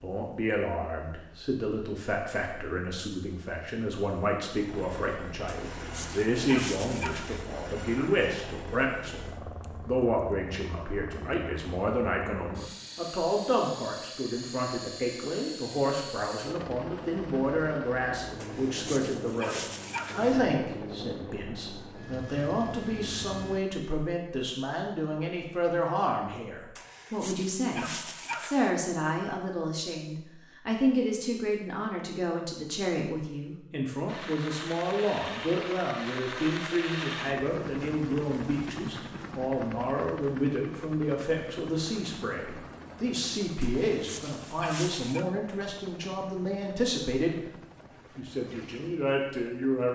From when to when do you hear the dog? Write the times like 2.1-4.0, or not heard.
5.5-7.5, 18.4-20.4, 26.8-28.7, 43.6-45.3.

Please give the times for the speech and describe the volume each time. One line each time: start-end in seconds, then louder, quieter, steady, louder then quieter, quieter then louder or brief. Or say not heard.
0.0-47.5 steady
48.1-49.9 brief.